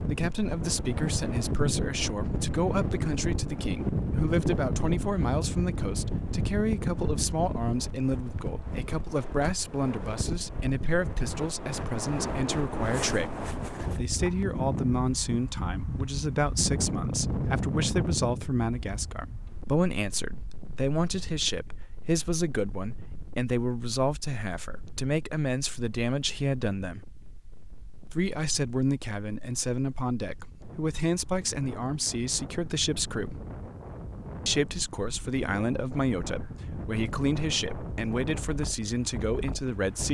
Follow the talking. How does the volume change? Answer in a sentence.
The volume of the talking stays about the same.